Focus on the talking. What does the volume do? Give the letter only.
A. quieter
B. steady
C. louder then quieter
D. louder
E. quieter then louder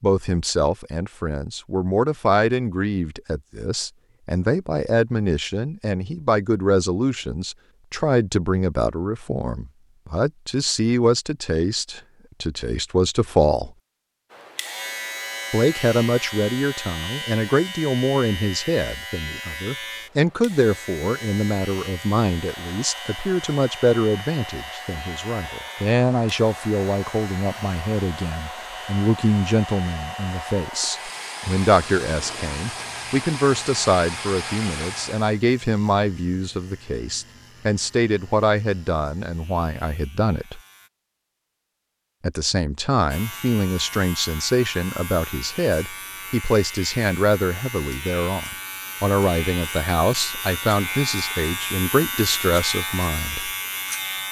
B.